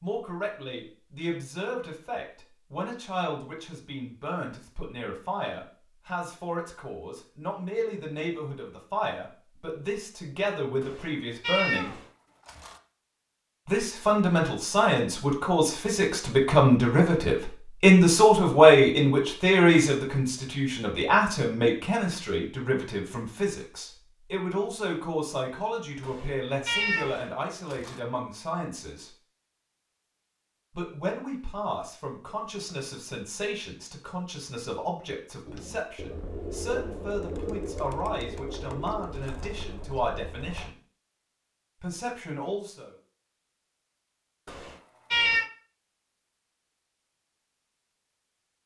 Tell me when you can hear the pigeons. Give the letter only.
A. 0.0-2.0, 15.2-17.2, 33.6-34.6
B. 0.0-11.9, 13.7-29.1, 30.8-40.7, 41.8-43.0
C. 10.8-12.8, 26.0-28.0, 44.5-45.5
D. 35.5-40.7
D.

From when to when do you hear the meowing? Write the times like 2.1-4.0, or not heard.
10.8-12.8, 26.0-28.0, 44.5-45.5.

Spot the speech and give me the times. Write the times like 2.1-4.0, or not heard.
0.0-11.9, 13.7-29.1, 30.8-40.7, 41.8-43.0.